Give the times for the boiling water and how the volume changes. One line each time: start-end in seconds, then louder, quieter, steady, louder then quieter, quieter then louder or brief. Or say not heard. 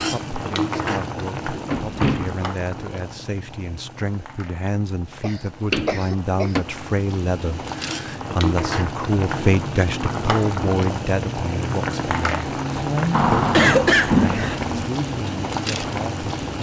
0.0-16.5 quieter then louder.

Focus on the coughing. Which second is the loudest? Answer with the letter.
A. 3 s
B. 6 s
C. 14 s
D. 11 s
C.